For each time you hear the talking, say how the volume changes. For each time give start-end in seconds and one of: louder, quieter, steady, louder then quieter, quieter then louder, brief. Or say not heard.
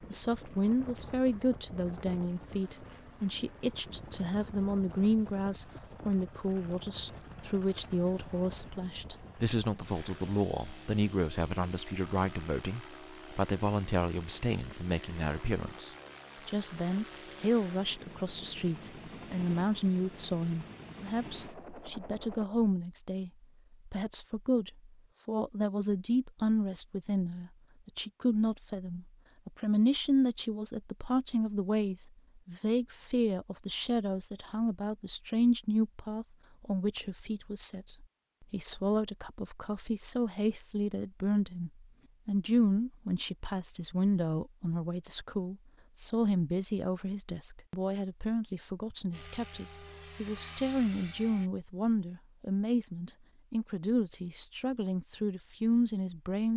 0.1-56.5 steady.